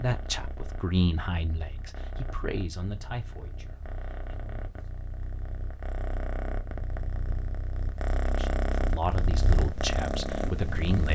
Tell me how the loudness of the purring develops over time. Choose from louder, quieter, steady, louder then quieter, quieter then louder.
louder.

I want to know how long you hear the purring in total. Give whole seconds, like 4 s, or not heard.
11 s.